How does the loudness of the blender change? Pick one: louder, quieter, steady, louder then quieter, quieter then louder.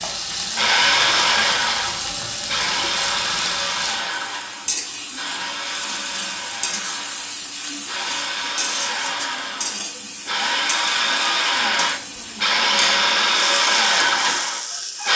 quieter then louder.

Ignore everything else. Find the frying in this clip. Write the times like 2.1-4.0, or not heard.
0.0-15.1.